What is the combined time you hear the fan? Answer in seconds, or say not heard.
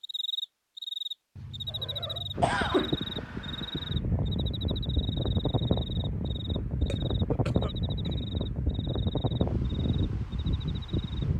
9 s.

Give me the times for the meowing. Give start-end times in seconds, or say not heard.
1.4-2.5.